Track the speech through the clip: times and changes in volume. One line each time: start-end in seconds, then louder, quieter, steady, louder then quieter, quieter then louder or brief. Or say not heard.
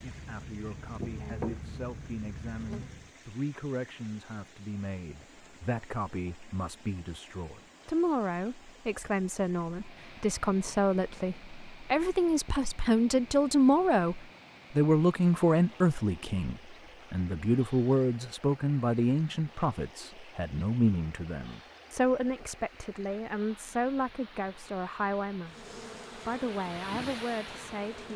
0.0-28.1 louder then quieter.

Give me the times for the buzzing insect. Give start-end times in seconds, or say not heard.
0.0-3.1, 25.4-28.1.